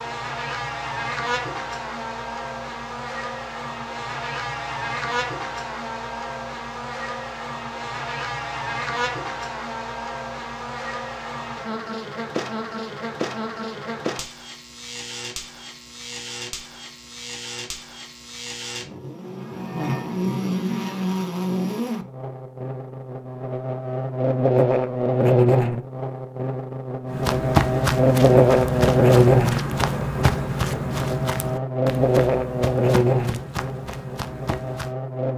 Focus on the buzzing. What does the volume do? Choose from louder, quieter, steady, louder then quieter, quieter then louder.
louder.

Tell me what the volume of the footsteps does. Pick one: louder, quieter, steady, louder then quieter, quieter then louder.
quieter.